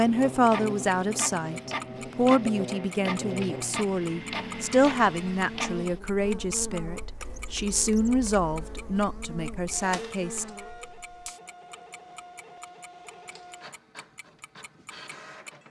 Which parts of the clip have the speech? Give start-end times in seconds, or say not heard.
0.0-10.4.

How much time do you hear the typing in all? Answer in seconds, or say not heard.
not heard.